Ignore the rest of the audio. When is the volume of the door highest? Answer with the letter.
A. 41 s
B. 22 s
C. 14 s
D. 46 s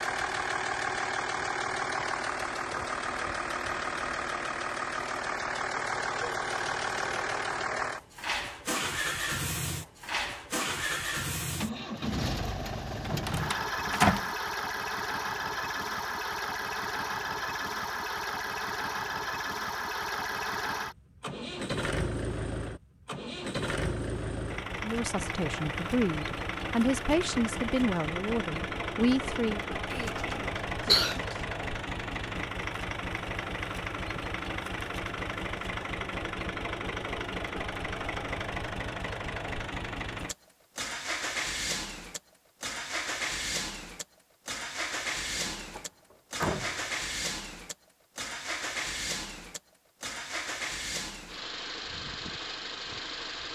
C.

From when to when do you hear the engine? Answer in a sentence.
You can hear the engine from 0.0 to 53.4 s.